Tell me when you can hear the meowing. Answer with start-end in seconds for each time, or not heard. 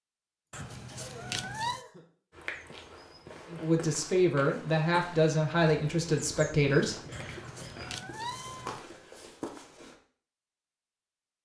0.5-1.9, 7.1-8.8.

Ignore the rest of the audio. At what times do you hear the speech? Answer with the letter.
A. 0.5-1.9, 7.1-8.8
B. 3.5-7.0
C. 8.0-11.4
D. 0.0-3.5
B.